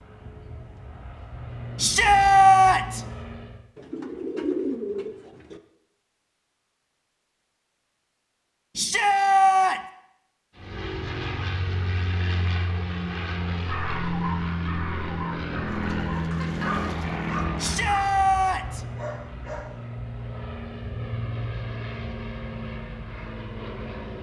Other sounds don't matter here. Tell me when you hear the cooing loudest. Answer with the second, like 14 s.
5 s.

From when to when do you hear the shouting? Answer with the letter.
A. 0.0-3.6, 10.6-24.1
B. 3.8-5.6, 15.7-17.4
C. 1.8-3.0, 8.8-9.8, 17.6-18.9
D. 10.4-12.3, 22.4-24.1
C.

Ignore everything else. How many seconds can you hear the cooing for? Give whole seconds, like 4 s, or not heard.
4 s.